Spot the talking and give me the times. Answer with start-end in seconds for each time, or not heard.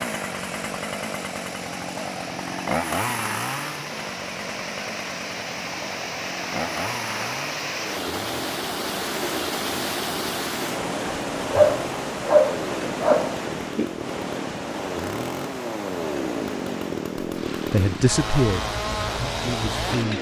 17.7-20.1.